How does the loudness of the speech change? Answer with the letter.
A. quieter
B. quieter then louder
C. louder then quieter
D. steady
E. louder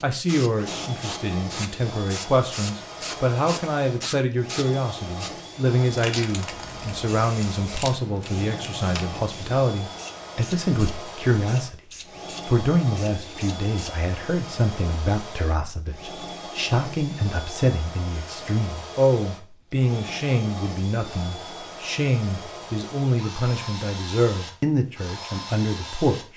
D.